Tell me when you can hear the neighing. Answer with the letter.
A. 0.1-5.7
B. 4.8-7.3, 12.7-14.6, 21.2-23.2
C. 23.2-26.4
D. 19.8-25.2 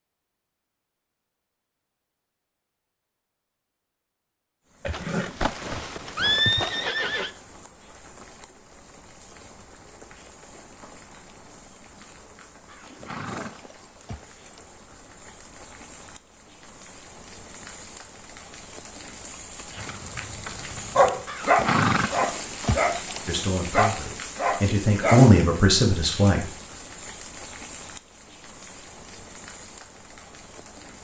B.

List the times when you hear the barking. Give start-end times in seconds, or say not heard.
19.8-25.2.